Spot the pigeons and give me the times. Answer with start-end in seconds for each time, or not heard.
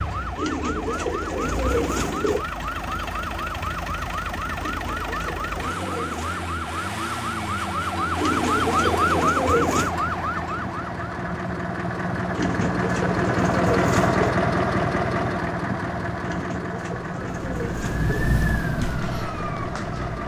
0.3-2.5, 4.5-6.3, 8.2-10.0, 12.3-14.4, 16.2-18.3.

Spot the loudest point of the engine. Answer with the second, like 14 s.
14 s.